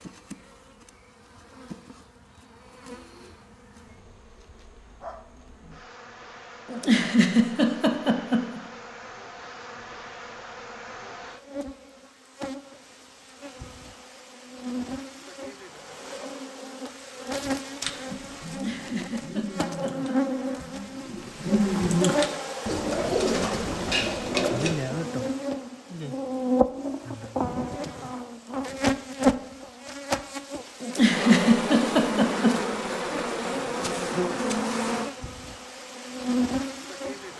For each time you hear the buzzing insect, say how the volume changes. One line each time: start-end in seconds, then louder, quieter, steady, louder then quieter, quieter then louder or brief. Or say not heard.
0.0-37.3 louder.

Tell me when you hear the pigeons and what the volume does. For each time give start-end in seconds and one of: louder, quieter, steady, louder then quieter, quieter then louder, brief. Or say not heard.
17.8-24.8 louder.